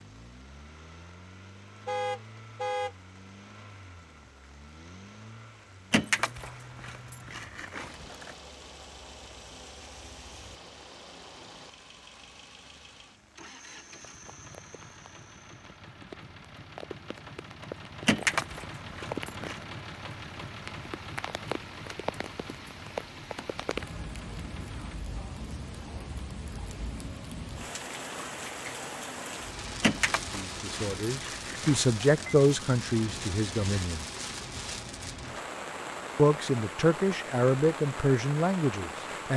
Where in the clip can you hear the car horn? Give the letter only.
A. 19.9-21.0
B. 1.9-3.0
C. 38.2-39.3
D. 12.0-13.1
B.